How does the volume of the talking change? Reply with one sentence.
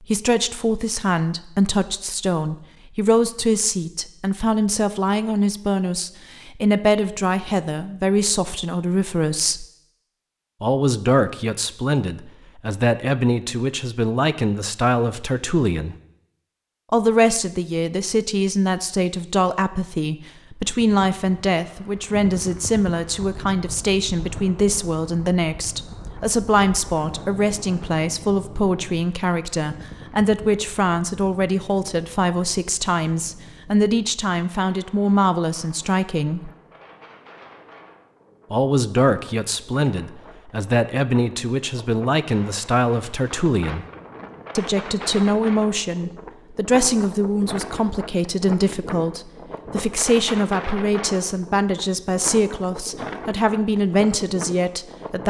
The volume of the talking stays about the same.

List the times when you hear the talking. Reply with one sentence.
You can hear the talking from 0.1 to 9.7 s, from 10.6 to 15.9 s, from 16.9 to 36.5 s, from 38.5 to 43.9 s and from 44.5 to 55.2 s.